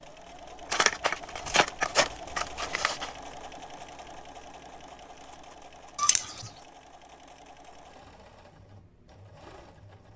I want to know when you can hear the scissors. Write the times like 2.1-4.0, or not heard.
0.7-3.1, 6.0-6.5.